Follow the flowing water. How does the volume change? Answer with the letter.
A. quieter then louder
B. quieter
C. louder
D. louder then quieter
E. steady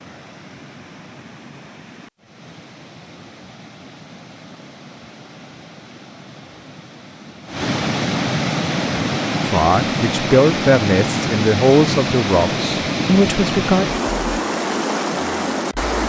C.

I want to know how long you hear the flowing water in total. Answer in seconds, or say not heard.
16 s.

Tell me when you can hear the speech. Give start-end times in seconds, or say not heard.
9.4-13.9.